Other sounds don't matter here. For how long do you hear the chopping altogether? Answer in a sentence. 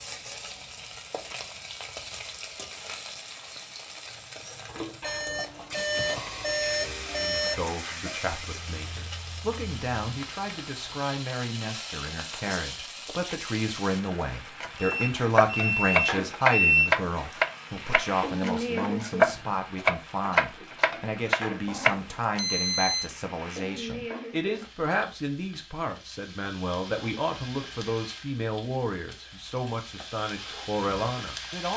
You can hear the chopping for 8 seconds altogether.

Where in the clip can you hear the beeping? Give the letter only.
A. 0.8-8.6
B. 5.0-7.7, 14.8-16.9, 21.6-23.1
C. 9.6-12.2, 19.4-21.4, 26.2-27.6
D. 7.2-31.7
B.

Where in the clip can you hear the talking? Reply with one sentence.
You can hear the talking from 7.2 to 31.7 s.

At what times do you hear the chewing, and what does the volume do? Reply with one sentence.
The chewing can't be heard in this clip.